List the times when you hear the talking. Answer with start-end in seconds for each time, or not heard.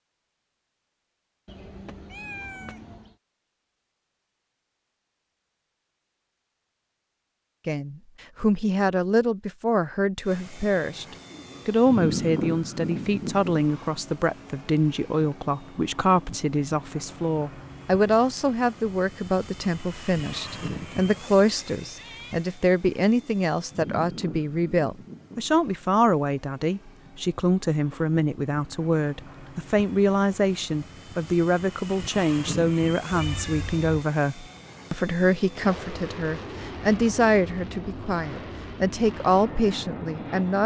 7.7-11.1, 11.7-40.6.